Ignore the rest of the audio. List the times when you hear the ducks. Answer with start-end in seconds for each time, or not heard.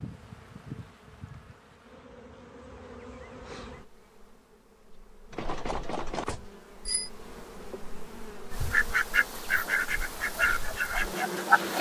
8.5-11.7.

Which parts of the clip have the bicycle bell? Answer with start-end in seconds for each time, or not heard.
5.3-7.1.